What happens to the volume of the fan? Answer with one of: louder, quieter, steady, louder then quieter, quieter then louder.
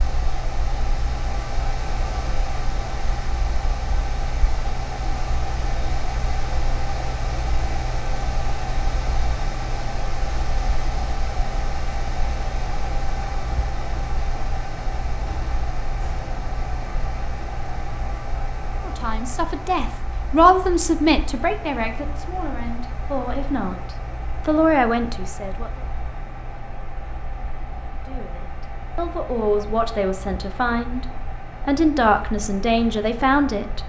quieter.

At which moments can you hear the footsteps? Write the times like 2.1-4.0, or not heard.
not heard.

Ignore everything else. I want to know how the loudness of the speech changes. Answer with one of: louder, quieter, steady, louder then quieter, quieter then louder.
quieter then louder.